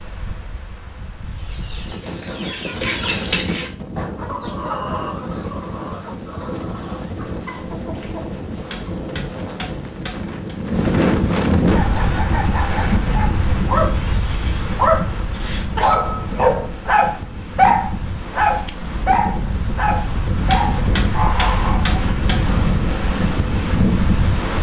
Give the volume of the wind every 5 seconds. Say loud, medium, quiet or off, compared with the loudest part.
medium, medium, loud, medium, loud.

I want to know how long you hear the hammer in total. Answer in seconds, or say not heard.
4 s.